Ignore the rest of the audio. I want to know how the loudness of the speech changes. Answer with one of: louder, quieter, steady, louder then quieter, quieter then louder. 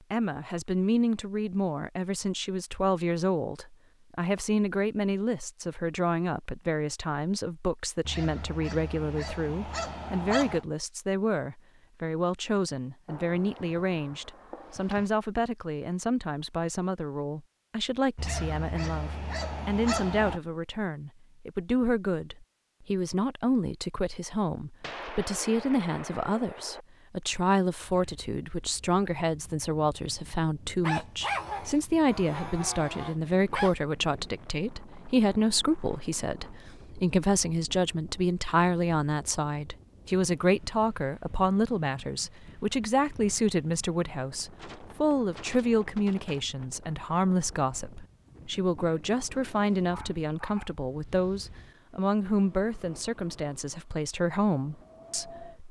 steady.